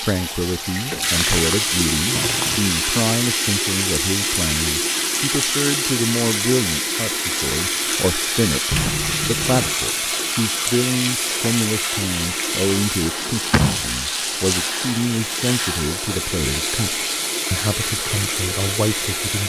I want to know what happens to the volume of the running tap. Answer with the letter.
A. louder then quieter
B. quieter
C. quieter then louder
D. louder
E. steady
E.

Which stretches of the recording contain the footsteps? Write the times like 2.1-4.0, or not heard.
not heard.